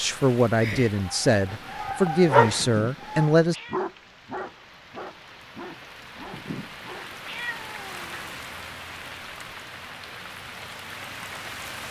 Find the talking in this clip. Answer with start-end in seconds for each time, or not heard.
0.0-3.5.